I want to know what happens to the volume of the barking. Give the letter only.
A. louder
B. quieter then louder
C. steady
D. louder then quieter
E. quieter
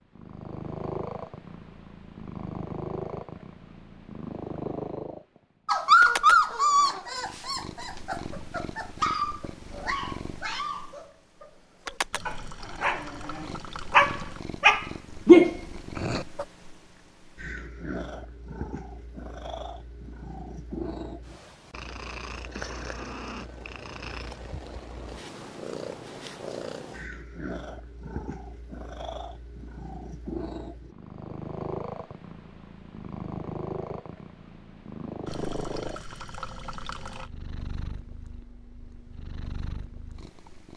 B.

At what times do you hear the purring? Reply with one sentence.
You can hear the purring from 0.1 to 40.7 s.